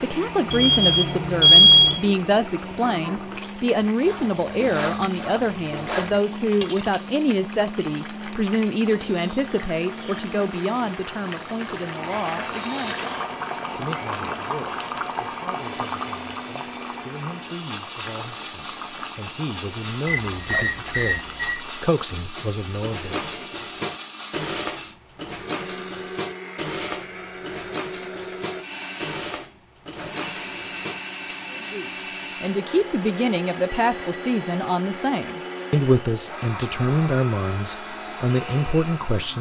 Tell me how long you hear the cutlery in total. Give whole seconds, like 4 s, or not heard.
12 s.